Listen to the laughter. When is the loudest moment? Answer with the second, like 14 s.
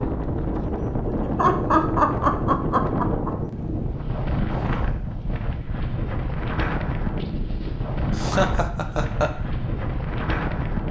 2 s.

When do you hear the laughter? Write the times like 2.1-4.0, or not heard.
1.1-3.3, 8.2-9.3.